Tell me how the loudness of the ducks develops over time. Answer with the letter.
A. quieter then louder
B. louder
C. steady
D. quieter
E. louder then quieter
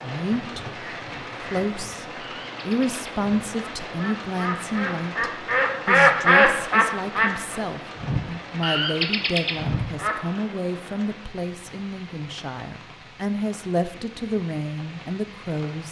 E.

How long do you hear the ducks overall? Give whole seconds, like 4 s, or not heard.
10 s.